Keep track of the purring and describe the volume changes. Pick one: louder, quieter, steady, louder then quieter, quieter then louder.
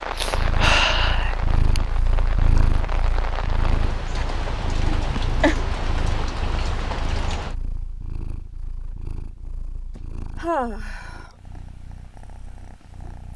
quieter.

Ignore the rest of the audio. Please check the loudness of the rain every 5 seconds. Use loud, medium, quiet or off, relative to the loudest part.
loud, loud, off.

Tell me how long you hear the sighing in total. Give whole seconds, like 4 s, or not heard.
4 s.